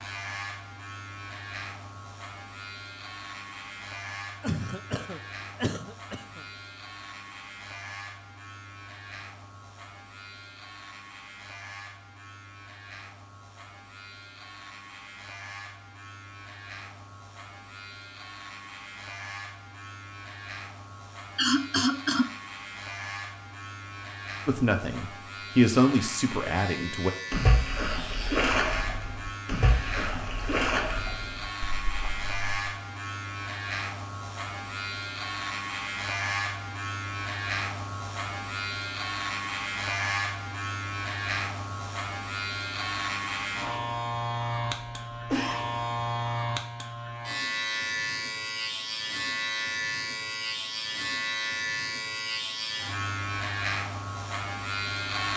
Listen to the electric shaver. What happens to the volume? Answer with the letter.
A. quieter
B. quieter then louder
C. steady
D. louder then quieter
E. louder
E.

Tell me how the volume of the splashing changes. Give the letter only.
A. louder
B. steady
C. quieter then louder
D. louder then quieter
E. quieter
E.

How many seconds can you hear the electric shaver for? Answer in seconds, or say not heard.
55 s.